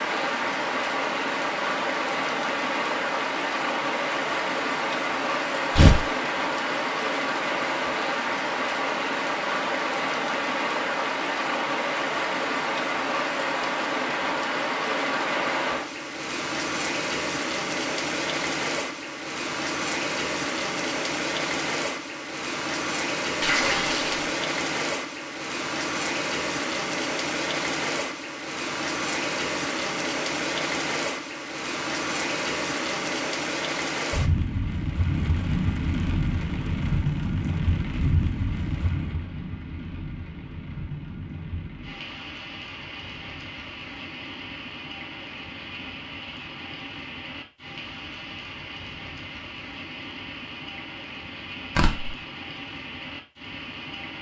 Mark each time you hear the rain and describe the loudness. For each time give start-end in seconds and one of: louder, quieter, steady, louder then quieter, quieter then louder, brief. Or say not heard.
0.0-54.1 quieter.